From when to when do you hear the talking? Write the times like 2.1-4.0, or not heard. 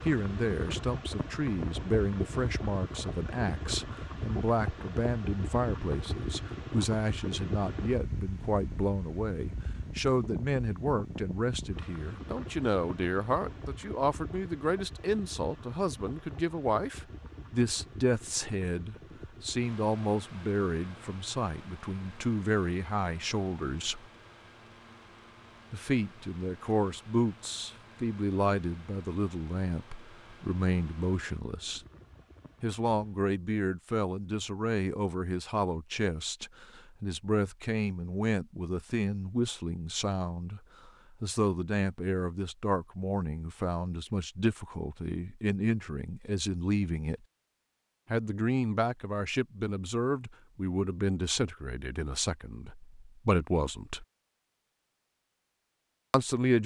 0.0-24.1, 25.7-31.8, 32.6-47.2, 48.1-54.0, 56.1-56.6.